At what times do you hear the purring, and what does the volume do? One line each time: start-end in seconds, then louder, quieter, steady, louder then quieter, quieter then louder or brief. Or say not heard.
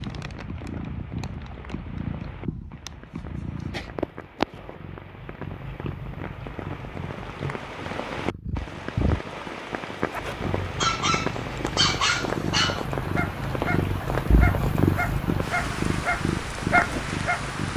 0.0-17.7 louder.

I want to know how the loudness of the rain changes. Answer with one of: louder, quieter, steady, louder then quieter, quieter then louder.
louder.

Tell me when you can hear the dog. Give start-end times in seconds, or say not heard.
10.1-17.4.